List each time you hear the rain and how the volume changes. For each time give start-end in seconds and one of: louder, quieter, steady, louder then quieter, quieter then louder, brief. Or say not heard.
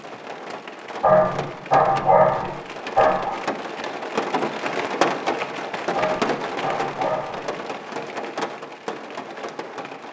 0.0-10.0 louder then quieter.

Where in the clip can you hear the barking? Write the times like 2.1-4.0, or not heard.
1.0-3.4, 6.0-7.5.